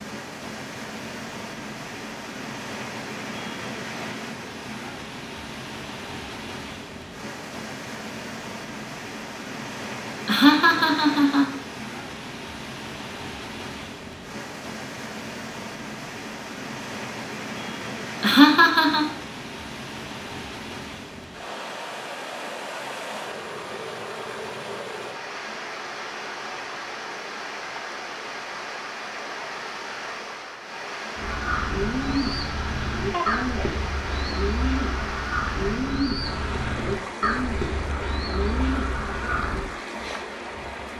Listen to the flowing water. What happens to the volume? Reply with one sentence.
The volume of the flowing water stays about the same.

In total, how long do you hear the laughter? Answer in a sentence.
The laughter can be heard for 3 seconds in total.